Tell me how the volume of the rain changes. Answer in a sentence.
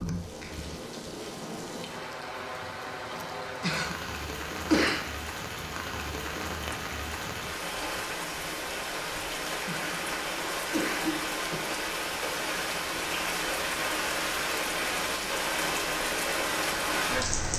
The loudness of the rain goes up.